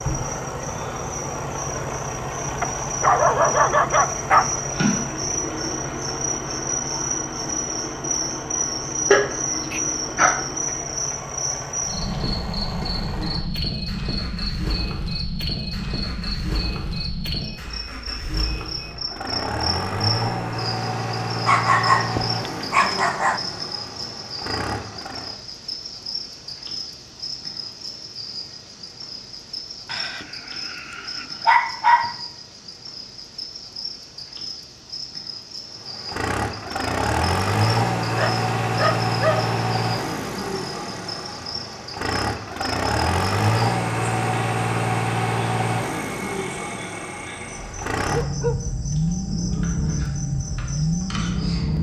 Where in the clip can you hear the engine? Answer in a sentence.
The engine can be heard from 0.0 to 25.4 s and from 35.8 to 51.7 s.